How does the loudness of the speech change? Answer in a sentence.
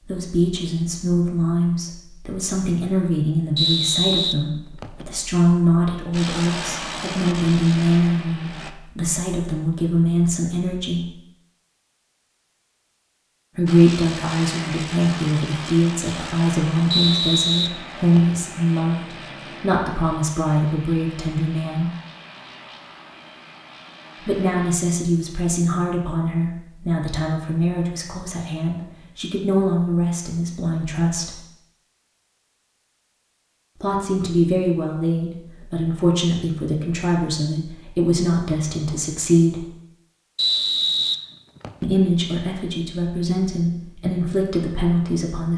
The loudness of the speech stays about the same.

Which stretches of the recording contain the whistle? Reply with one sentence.
The whistle can be heard from 3.5 to 5.0 s, from 16.9 to 18.4 s and from 40.4 to 41.9 s.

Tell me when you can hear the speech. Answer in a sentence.
You can hear the speech from 0.1 to 11.1 s, from 13.6 to 21.9 s, from 24.2 to 31.4 s, from 33.8 to 39.6 s and from 41.8 to 45.5 s.